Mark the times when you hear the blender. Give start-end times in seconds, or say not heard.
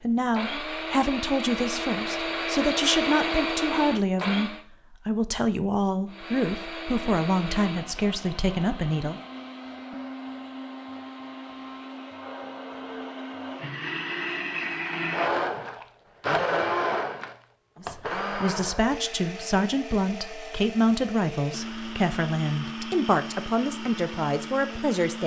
0.0-4.7, 6.0-25.2.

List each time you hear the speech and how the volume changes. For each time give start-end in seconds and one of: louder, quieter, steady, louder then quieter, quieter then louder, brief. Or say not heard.
0.0-9.2 steady
17.8-25.2 steady.